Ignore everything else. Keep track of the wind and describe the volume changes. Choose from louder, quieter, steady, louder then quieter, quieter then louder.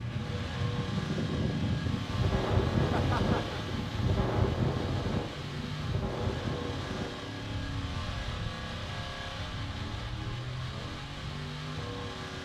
quieter.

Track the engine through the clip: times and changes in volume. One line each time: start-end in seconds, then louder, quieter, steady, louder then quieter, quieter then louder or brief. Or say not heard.
0.0-12.4 steady.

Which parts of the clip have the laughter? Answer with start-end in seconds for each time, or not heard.
2.9-3.6.